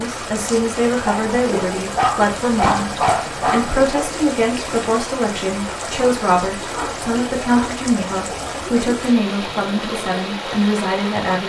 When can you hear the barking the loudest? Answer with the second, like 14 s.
3 s.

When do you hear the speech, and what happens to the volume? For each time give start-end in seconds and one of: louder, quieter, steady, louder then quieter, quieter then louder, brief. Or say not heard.
0.0-11.4 steady.